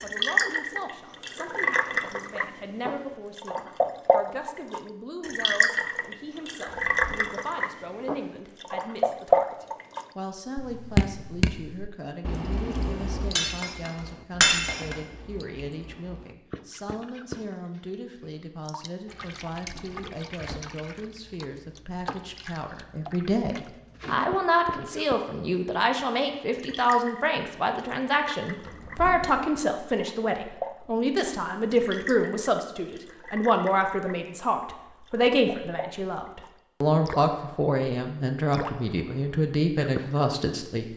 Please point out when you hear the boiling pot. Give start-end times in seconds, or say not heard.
not heard.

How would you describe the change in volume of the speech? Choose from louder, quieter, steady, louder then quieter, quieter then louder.
louder.